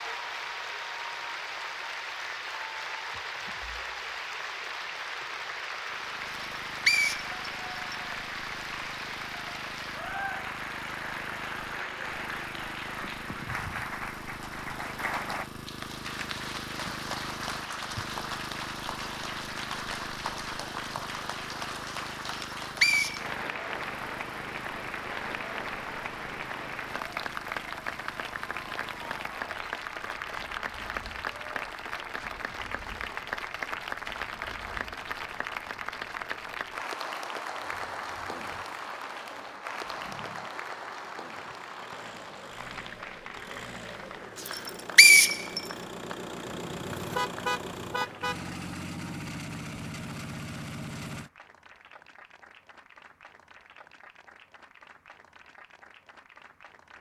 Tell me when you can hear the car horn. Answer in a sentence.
The car horn can be heard from 46.5 to 48.4 s.